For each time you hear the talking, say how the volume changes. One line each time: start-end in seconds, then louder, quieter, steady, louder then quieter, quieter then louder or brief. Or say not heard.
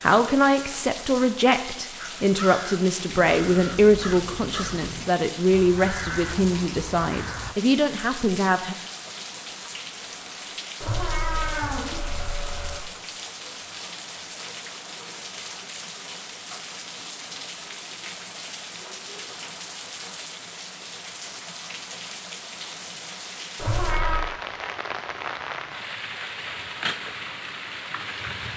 0.0-8.8 steady.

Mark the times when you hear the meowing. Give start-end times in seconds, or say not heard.
10.8-12.8, 23.6-24.2.